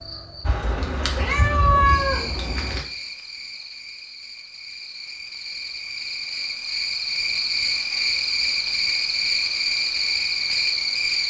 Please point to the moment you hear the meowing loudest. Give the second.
2 s.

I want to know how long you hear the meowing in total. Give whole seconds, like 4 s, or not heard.
2 s.